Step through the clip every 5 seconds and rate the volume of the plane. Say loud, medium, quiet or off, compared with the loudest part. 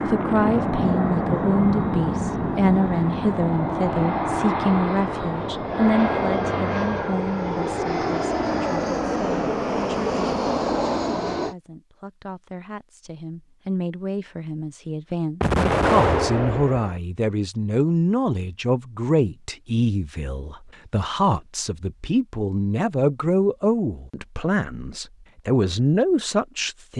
loud, loud, loud, off, off, off.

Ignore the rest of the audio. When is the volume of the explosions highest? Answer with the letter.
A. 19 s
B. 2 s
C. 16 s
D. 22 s
C.